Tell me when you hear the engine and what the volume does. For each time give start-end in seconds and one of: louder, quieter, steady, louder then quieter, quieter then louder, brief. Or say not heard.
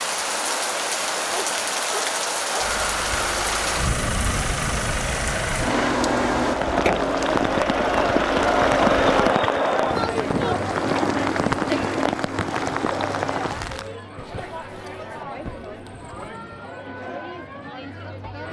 2.5-9.3 steady.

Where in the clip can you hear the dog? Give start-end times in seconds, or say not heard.
1.3-2.7, 14.2-16.3.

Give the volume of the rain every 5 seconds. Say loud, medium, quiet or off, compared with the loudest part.
loud, loud, loud, off.